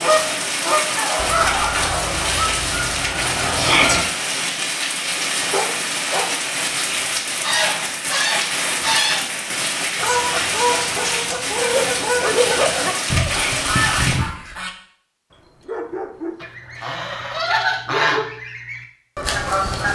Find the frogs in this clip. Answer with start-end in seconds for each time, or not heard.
not heard.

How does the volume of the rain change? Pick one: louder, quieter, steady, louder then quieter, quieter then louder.
steady.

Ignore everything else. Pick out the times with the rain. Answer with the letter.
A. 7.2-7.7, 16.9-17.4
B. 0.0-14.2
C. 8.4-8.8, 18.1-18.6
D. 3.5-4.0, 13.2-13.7
B.